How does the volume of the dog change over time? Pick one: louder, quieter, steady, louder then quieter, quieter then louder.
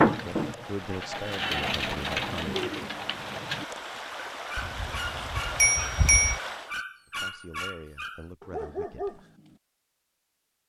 quieter then louder.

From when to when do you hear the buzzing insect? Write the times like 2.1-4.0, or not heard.
not heard.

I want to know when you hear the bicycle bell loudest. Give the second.
6 s.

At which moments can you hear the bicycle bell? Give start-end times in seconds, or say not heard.
4.5-6.4.